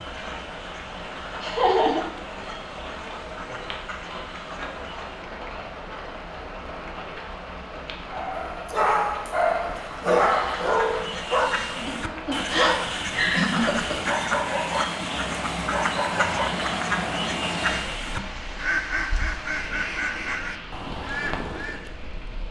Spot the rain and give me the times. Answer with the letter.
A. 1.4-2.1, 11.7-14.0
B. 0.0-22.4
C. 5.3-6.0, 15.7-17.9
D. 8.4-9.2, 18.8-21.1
B.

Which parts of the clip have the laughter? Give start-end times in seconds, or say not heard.
1.4-2.1, 11.7-14.0.